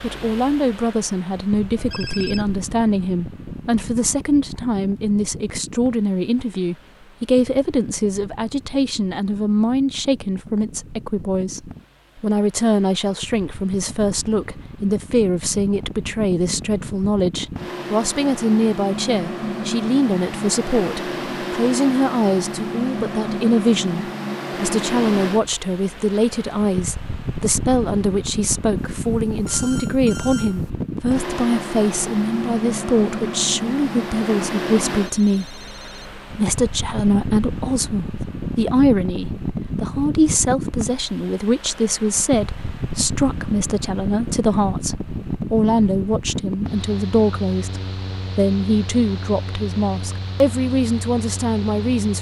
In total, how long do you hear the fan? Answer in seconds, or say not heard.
52 s.